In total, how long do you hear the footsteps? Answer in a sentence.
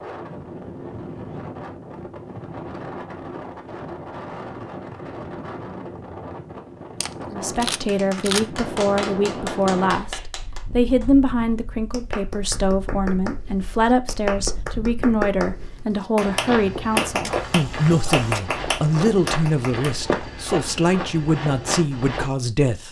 The footsteps can be heard for 6 seconds in total.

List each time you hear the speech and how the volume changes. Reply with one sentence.
The speech can be heard from 7.3 to 22.8 s, at a steady volume.